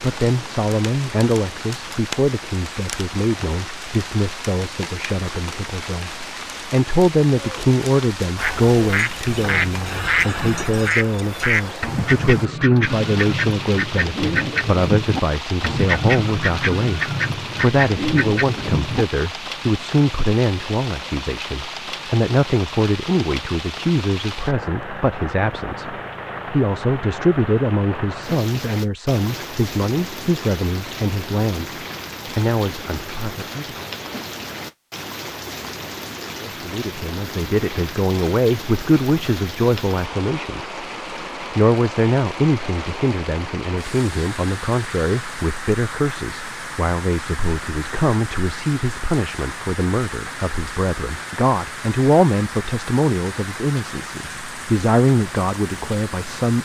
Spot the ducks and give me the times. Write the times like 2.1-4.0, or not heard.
8.3-19.1.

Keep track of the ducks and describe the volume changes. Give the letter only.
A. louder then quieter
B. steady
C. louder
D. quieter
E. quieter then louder
B.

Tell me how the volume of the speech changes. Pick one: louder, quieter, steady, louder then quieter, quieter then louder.
steady.